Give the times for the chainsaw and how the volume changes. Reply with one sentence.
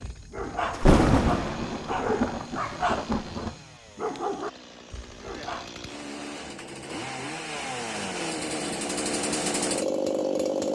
You can hear the chainsaw from 0.0 to 10.6 s, getting louder.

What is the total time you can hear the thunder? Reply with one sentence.
The thunder can be heard for 3 seconds in total.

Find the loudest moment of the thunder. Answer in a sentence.
The loudest moment of the thunder is at 1 second.